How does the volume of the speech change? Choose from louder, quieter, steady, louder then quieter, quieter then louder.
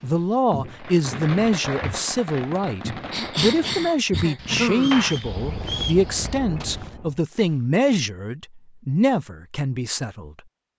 steady.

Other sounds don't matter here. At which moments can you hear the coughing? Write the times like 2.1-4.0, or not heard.
3.1-5.0.